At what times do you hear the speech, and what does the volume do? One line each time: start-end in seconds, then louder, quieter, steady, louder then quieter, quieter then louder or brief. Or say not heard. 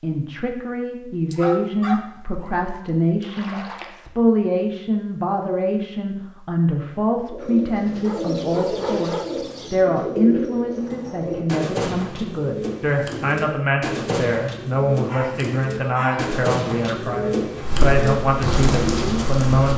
0.0-19.7 steady.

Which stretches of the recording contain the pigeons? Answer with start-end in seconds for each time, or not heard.
7.2-19.3.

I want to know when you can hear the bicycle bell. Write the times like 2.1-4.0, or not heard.
not heard.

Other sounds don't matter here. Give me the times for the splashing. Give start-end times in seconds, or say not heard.
3.2-4.0.